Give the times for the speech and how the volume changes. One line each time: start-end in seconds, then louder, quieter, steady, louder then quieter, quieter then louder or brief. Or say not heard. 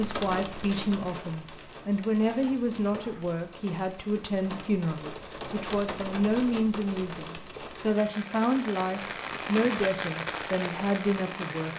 0.0-11.7 steady.